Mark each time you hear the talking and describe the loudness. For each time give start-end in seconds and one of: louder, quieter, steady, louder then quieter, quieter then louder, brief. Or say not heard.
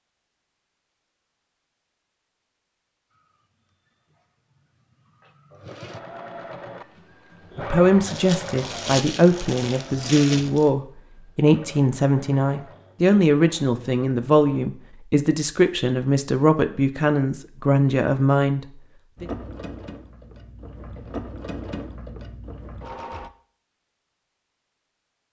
7.5-19.2 steady.